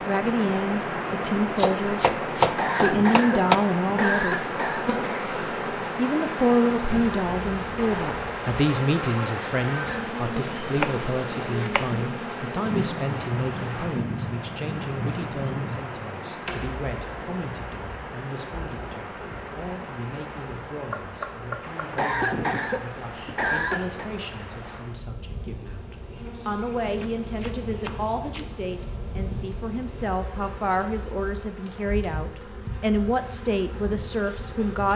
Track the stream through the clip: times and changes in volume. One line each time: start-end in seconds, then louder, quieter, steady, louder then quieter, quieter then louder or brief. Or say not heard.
0.0-25.0 quieter.